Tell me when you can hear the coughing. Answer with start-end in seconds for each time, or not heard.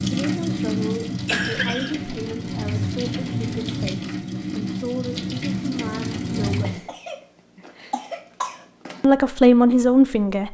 1.1-2.9, 6.6-9.1.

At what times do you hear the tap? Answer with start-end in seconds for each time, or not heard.
0.0-6.8.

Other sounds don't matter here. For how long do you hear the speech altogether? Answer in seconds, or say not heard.
8 s.